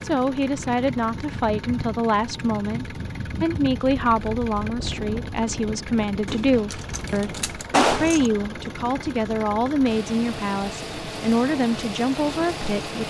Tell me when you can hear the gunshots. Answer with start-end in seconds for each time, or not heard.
6.2-8.3.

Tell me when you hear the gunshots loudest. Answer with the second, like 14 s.
8 s.